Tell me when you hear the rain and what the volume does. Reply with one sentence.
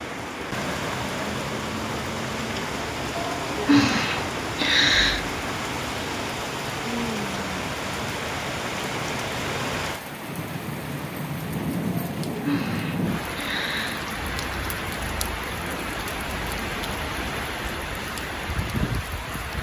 You can hear the rain from 0.0 to 19.5 s, at a steady volume.